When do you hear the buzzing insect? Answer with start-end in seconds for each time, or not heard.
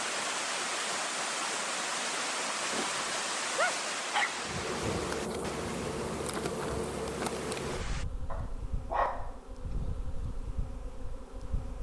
4.3-11.7.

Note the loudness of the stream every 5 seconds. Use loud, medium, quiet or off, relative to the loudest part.
loud, medium, off.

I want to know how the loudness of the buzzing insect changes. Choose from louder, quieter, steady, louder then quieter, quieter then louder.
quieter.